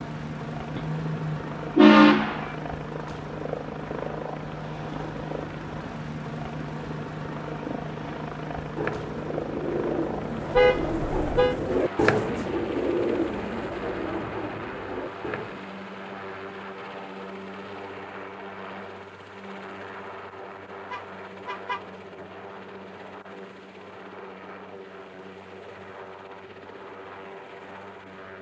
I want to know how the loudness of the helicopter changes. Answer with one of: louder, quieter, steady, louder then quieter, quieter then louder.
quieter.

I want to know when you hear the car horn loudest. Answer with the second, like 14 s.
2 s.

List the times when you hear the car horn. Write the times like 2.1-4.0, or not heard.
0.8-2.5, 10.5-11.6, 20.9-21.9.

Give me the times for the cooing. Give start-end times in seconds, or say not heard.
8.8-15.6.